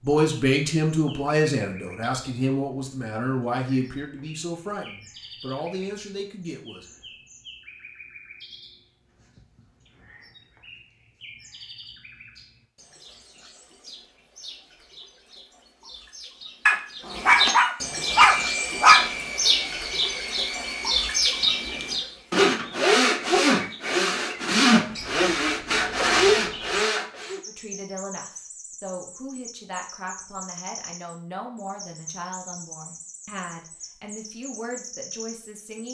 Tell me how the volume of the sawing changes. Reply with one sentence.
The loudness of the sawing goes up.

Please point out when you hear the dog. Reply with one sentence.
The dog can be heard from 16.6 to 19.1 s.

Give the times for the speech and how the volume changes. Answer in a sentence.
You can hear the speech from 0.0 to 6.8 s, getting quieter; and from 27.4 to 35.9 s, at a steady volume.